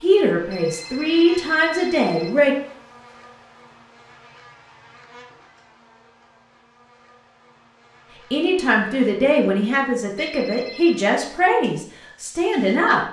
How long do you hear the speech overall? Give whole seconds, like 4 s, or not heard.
7 s.